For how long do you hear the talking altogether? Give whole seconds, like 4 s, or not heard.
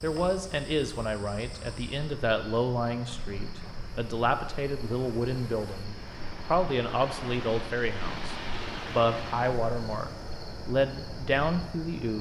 12 s.